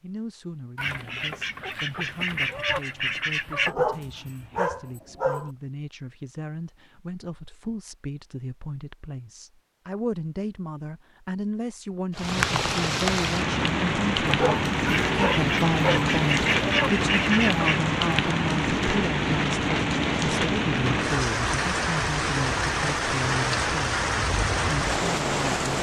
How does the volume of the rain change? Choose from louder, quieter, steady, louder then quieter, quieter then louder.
steady.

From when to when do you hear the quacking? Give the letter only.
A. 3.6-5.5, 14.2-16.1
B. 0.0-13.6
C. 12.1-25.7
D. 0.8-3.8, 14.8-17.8
D.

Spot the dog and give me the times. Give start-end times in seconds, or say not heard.
3.6-5.5, 14.2-16.1.